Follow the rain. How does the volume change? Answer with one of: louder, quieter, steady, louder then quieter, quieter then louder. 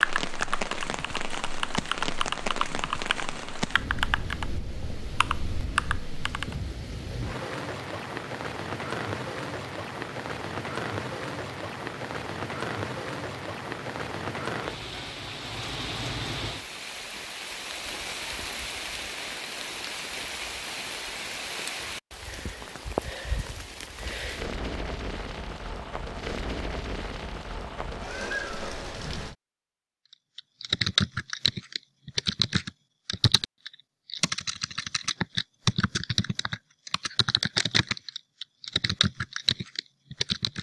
steady.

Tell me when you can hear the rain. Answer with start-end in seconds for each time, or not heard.
0.0-29.4.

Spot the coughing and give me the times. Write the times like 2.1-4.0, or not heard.
not heard.